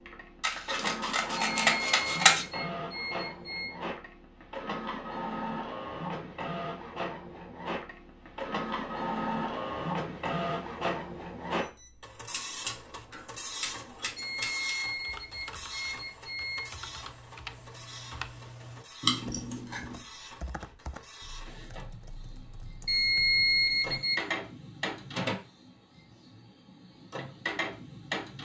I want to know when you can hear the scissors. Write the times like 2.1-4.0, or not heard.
0.4-2.5, 12.3-14.8, 19.0-19.9.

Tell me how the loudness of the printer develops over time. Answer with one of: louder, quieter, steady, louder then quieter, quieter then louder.
quieter then louder.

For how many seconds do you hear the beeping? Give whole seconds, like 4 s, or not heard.
6 s.